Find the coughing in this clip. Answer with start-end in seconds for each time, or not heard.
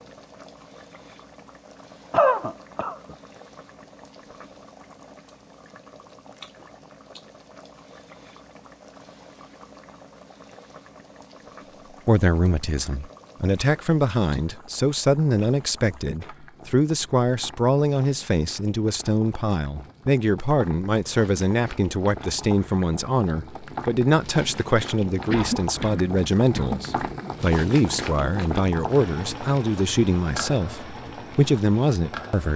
2.1-3.1, 25.2-27.1.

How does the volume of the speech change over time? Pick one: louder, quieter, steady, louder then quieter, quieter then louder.
steady.